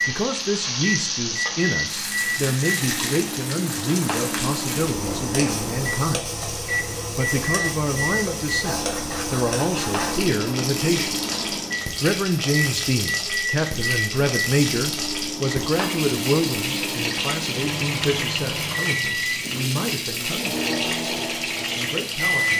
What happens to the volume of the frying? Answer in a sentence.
The loudness of the frying stays about the same.